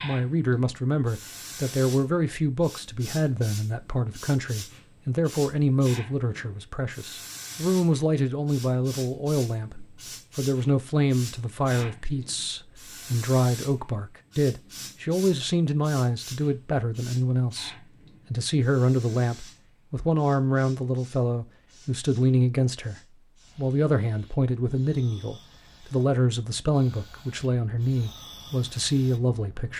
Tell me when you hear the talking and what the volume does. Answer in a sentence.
You can hear the talking from 0.0 to 29.7 s, at a steady volume.